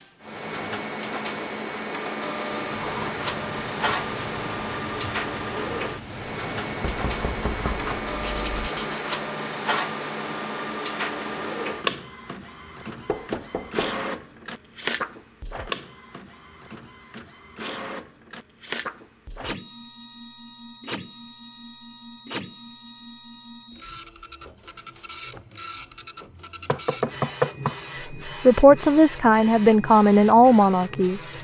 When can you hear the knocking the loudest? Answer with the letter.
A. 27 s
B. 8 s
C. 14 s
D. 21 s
A.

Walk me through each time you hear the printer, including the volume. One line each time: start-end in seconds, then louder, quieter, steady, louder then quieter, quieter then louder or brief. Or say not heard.
0.2-31.3 quieter.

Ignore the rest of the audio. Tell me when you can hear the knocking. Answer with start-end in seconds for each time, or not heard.
6.8-8.6, 13.1-14.0, 26.6-27.8.